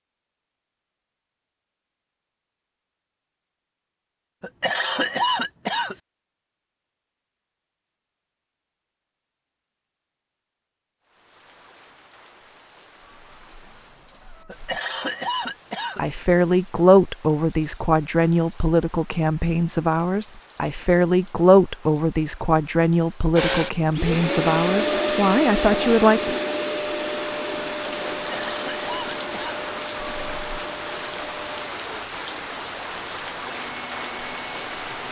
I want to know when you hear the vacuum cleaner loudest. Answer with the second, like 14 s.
25 s.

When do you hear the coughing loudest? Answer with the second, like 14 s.
5 s.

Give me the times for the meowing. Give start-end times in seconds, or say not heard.
13.0-14.7, 29.9-30.6.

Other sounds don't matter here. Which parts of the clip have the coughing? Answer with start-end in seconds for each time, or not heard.
4.4-6.0, 14.4-16.1, 28.1-29.6.